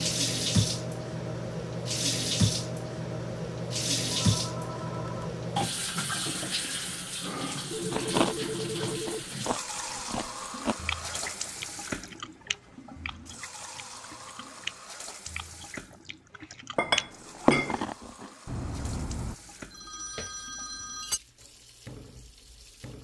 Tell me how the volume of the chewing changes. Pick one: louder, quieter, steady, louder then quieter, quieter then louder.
quieter then louder.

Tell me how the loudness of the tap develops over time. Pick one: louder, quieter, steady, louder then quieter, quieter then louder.
quieter.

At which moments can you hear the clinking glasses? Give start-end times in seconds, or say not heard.
16.8-17.8.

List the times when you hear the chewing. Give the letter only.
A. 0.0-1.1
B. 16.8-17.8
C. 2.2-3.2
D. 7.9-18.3
D.